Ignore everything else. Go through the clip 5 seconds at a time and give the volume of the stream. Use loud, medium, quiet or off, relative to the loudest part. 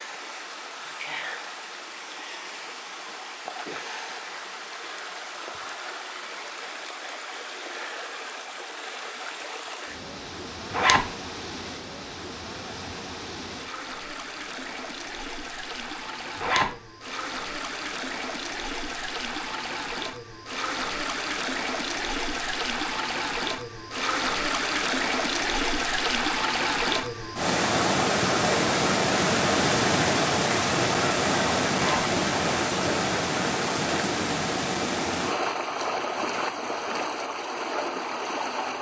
quiet, quiet, quiet, medium, medium, loud, loud, medium.